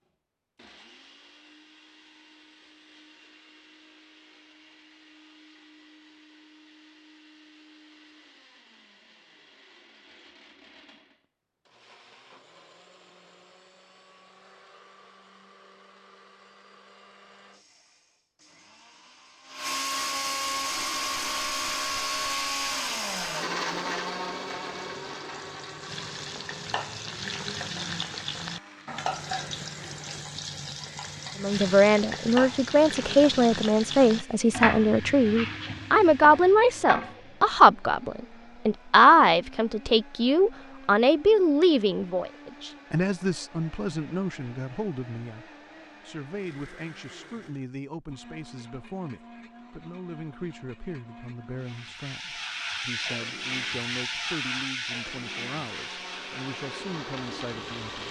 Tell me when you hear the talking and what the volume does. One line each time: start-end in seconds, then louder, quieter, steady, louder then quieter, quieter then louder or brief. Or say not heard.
31.4-58.0 quieter.